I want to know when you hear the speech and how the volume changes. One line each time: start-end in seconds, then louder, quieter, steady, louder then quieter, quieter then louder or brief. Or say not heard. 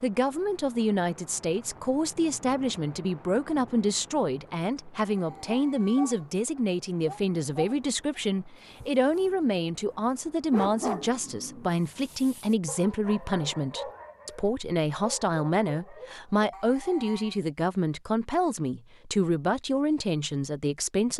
0.0-21.1 steady.